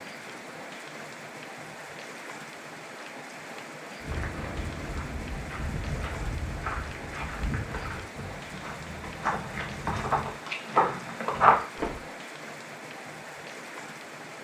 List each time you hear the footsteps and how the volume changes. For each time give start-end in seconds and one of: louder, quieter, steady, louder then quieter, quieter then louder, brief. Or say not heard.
4.0-12.0 louder.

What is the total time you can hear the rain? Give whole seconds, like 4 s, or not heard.
14 s.